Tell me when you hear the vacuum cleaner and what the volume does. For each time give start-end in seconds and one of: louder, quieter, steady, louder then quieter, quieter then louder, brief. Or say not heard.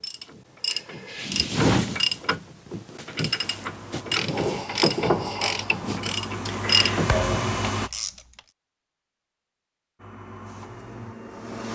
3.4-7.9 louder
9.9-11.7 brief.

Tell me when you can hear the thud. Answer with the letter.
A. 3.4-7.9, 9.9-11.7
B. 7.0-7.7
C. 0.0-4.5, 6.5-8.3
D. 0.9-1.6
B.